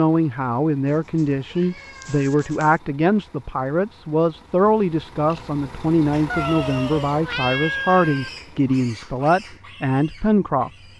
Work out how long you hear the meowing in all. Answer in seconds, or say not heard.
4 s.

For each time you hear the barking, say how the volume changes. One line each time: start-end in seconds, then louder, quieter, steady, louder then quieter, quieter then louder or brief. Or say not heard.
not heard.